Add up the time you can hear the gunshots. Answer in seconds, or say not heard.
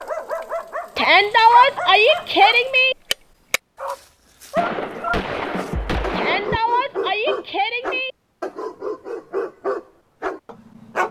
2 s.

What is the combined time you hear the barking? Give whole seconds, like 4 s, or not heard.
11 s.